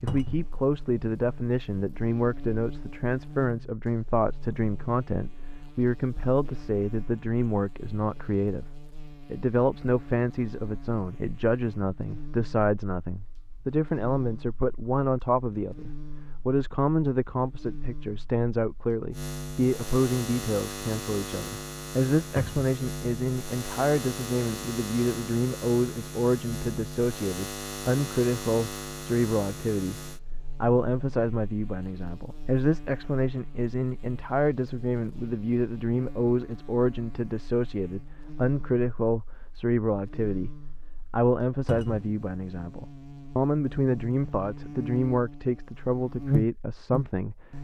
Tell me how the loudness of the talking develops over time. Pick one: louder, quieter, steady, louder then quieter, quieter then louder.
steady.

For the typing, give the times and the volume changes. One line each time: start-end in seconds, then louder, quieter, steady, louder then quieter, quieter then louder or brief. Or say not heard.
not heard.